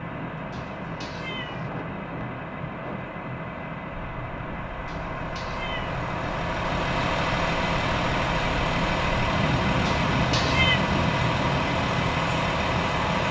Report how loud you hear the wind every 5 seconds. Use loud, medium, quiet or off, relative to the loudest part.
medium, loud, loud.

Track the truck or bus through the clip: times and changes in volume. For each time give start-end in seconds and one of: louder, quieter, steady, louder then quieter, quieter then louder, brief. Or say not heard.
0.0-13.2 louder.